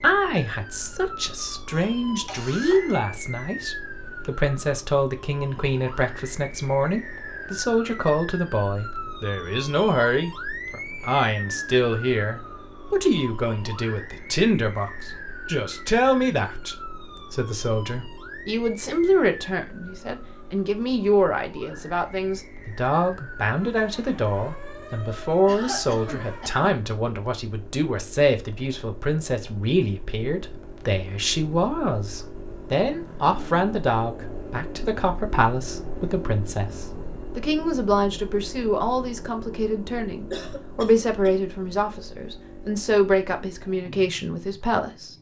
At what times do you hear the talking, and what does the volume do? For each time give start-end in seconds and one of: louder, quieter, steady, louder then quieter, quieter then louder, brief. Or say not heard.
0.0-45.1 steady.